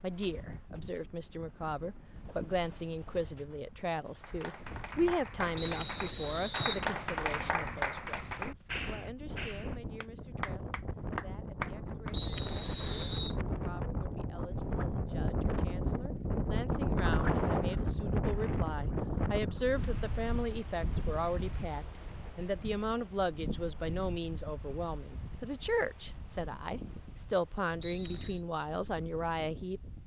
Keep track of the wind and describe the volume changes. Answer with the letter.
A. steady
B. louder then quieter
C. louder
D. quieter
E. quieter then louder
B.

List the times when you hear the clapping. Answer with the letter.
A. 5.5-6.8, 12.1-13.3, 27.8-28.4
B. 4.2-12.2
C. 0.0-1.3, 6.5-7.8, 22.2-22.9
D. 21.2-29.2
B.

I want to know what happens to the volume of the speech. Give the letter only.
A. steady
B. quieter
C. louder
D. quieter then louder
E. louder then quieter
D.